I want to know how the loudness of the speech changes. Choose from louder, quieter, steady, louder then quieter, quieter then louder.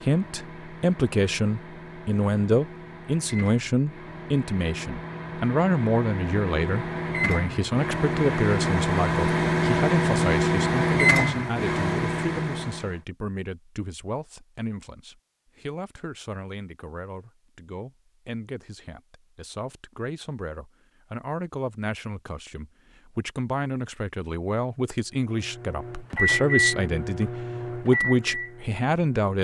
quieter then louder.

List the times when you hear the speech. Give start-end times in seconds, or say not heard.
0.0-29.3.